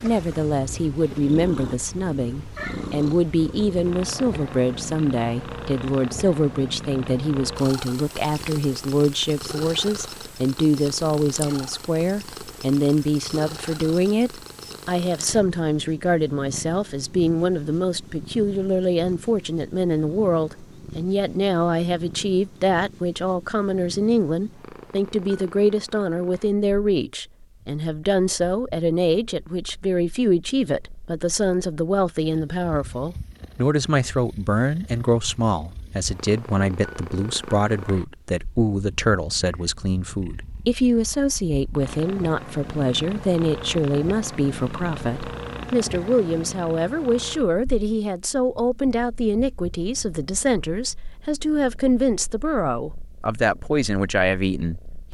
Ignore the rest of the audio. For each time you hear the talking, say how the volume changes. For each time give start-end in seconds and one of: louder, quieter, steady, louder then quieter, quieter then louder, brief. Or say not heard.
0.0-54.8 steady.